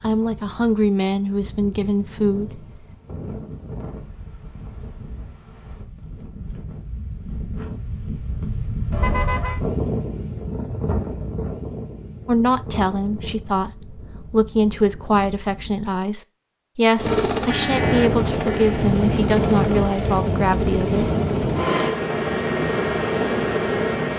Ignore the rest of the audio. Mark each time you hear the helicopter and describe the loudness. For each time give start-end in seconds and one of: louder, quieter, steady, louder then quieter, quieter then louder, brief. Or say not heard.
16.9-24.1 steady.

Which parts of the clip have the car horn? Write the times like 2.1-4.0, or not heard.
8.9-9.6, 17.5-18.9.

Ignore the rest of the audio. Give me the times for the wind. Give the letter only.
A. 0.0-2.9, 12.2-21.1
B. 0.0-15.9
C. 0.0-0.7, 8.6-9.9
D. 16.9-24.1
B.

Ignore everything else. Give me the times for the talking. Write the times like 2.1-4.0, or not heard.
0.0-2.9, 12.2-21.1.